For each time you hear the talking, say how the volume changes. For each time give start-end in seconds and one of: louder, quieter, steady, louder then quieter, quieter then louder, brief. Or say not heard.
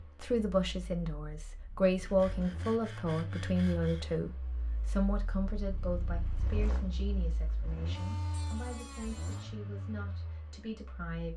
0.2-11.3 quieter.